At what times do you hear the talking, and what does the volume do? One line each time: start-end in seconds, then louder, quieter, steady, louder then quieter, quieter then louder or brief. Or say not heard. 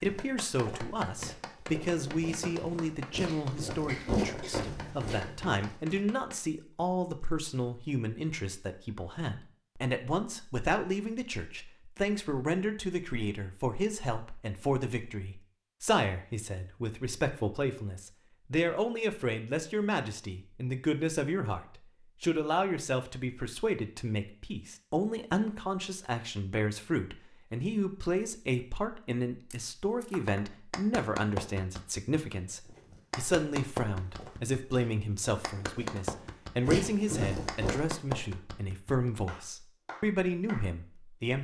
0.0-41.4 steady.